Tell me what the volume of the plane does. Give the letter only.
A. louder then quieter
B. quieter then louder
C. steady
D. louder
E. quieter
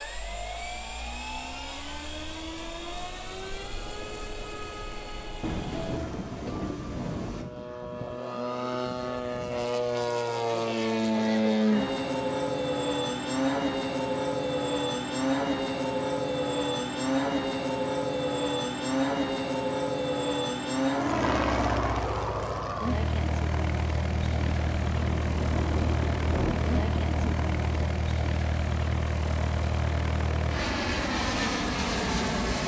D.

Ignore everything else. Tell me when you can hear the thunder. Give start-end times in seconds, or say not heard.
5.4-7.5, 24.3-27.9.